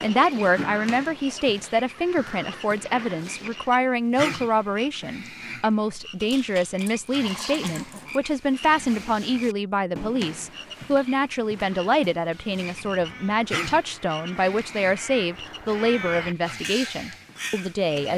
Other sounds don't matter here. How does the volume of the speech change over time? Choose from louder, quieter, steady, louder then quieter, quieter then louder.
steady.